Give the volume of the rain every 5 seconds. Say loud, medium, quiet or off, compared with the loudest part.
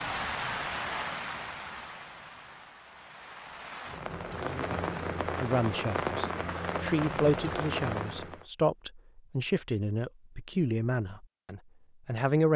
loud, loud, off.